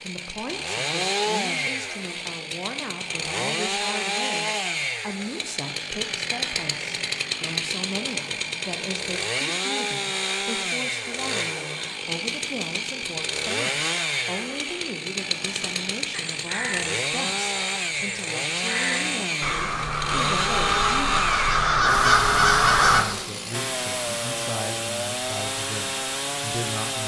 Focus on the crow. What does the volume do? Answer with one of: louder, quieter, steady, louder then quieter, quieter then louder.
louder.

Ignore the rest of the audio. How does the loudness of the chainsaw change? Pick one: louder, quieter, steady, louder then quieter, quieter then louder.
steady.